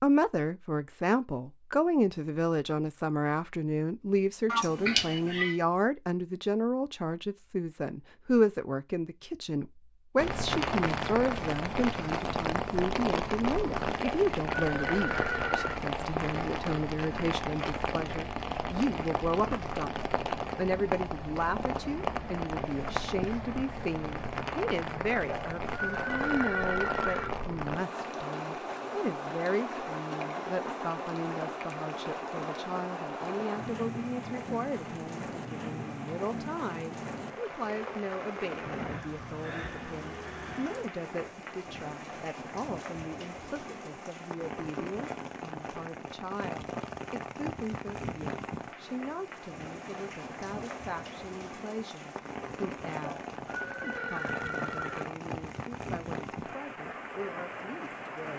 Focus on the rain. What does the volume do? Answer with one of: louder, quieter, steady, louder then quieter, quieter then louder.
quieter.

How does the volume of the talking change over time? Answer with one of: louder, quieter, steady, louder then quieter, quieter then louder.
quieter.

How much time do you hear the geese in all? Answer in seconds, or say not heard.
not heard.